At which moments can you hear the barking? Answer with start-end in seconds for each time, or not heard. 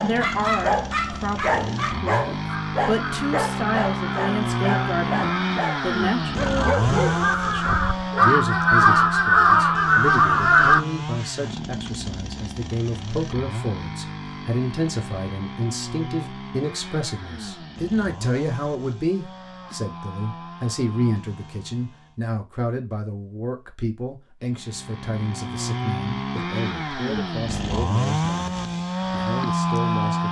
0.0-8.2.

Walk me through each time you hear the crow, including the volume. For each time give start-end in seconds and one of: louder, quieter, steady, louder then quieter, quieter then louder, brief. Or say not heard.
2.5-10.8 louder.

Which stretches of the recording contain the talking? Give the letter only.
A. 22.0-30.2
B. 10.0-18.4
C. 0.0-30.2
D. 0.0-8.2
C.